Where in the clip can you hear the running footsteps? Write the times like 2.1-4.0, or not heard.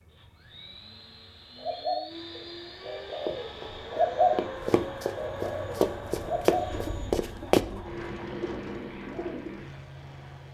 3.2-7.6.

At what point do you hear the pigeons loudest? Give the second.
4 s.